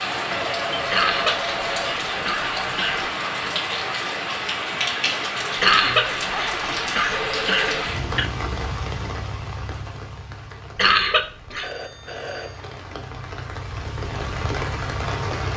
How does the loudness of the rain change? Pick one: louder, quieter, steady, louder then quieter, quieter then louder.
quieter then louder.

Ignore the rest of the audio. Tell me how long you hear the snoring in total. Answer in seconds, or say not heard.
not heard.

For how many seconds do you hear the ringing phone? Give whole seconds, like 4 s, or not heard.
5 s.